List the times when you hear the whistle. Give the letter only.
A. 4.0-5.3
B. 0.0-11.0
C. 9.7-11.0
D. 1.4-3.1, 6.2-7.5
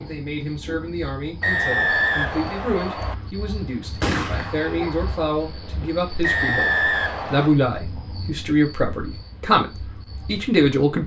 D.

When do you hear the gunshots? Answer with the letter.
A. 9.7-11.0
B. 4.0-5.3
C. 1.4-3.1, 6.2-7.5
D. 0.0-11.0
B.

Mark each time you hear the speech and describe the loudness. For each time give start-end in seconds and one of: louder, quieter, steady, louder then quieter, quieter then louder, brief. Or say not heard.
0.0-11.0 louder.